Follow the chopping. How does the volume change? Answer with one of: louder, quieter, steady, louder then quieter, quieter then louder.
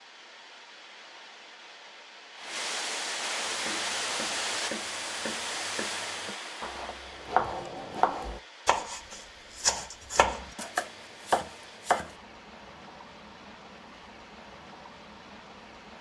louder.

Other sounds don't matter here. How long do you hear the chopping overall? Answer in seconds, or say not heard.
9 s.